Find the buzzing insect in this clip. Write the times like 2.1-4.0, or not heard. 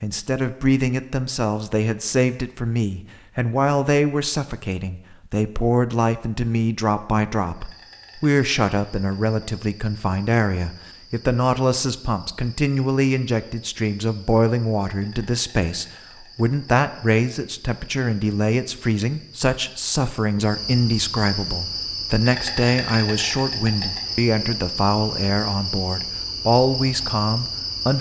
7.5-27.9.